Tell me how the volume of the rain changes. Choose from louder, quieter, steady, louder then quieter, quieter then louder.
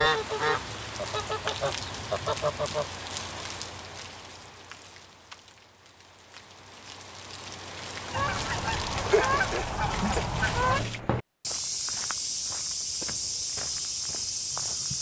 quieter then louder.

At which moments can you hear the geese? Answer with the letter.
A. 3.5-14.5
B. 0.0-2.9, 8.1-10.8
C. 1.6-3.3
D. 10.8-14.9
B.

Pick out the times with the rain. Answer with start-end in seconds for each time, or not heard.
0.0-11.0.